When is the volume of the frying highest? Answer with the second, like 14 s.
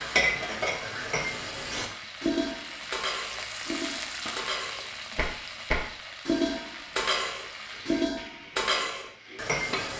4 s.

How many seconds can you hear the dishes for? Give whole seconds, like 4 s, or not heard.
10 s.